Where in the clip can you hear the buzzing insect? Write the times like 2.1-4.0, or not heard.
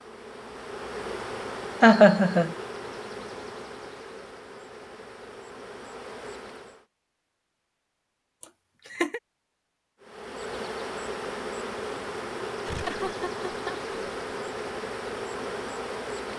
0.0-6.8, 10.0-16.3.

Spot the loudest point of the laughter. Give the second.
2 s.